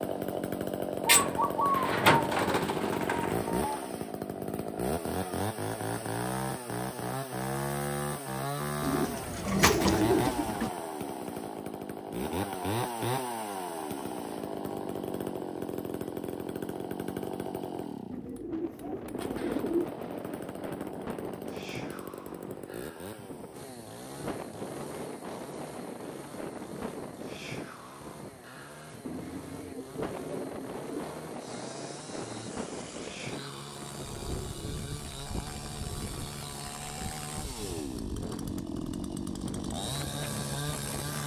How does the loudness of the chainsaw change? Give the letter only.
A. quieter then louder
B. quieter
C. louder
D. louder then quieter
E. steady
A.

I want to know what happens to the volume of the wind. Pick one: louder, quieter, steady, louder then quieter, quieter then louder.
steady.